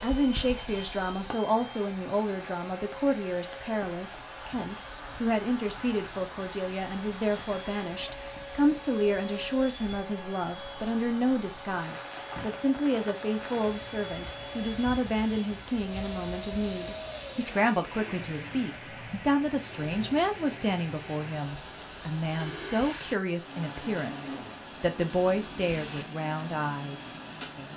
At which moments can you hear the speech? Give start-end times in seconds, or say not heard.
0.0-27.7.